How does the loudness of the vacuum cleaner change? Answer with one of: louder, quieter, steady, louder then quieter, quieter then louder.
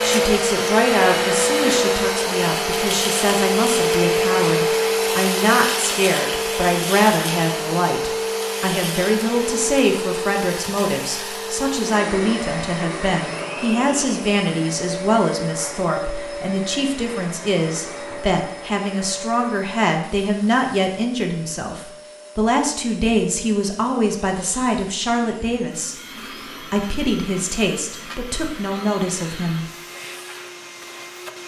quieter.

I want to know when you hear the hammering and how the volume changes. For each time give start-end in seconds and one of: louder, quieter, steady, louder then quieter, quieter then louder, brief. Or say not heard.
not heard.